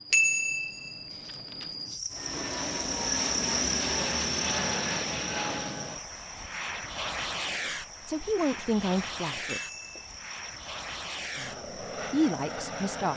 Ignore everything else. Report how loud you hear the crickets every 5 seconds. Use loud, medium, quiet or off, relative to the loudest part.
loud, medium, quiet.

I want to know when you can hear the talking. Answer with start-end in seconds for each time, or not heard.
8.1-9.6, 11.3-13.1.